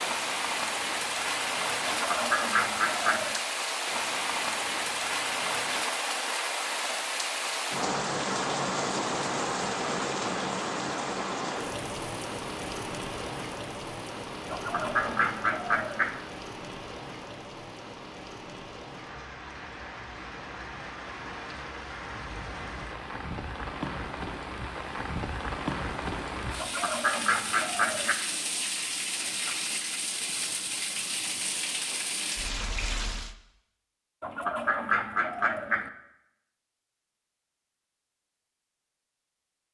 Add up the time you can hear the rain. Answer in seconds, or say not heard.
33 s.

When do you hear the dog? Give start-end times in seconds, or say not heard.
not heard.